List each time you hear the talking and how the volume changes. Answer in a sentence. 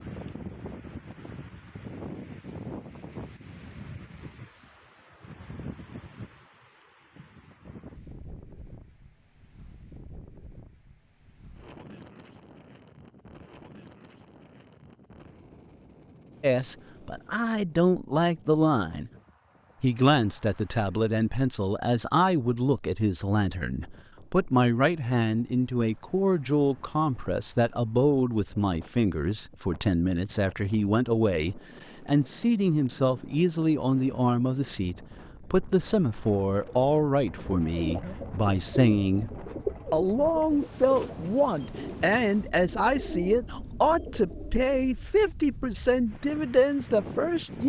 The talking can be heard briefly from 16.4 to 19.1 s; from 19.8 to 39.3 s, at a steady volume; and from 39.9 to 47.6 s, at a steady volume.